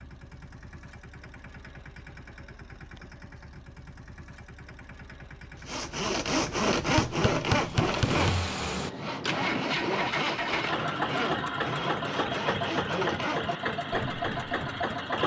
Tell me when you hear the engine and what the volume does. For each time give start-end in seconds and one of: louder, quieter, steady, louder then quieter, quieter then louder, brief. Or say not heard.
0.0-15.2 louder.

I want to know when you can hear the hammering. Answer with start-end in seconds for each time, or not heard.
7.0-8.4.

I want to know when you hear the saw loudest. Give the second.
7 s.